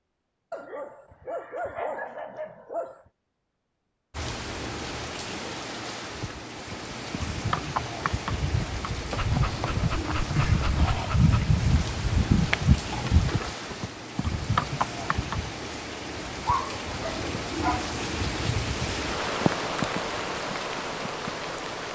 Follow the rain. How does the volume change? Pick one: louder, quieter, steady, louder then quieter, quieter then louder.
louder.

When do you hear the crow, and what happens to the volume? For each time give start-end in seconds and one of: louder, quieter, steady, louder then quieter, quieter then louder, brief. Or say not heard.
not heard.